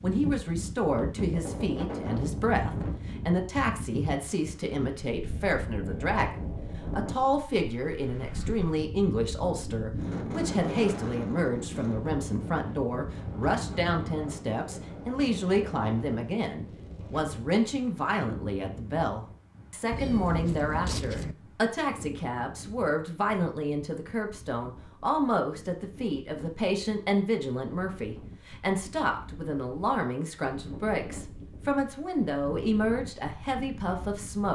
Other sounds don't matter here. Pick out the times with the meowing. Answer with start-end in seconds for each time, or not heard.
19.9-21.4.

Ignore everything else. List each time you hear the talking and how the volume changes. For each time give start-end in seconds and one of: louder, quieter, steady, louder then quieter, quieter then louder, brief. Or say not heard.
0.0-34.5 steady.